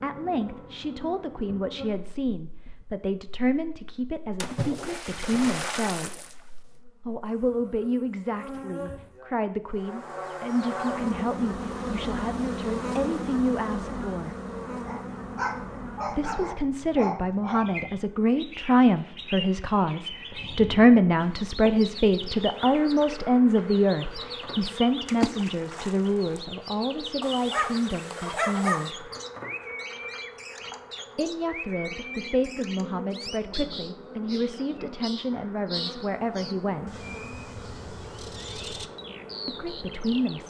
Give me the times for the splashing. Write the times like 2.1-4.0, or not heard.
4.4-6.3, 25.1-26.4.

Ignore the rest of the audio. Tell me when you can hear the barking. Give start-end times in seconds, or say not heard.
14.8-17.7, 27.2-28.9.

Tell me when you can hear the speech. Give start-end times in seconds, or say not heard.
0.0-6.3, 7.0-14.3, 16.1-29.1, 31.1-37.0, 39.5-40.4.